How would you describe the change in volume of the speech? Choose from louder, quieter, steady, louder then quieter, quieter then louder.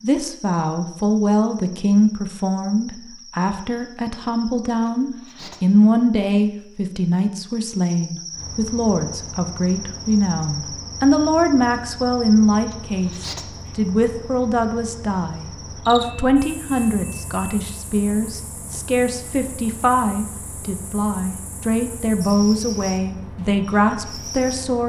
steady.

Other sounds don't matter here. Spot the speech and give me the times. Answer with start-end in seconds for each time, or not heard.
0.0-24.8.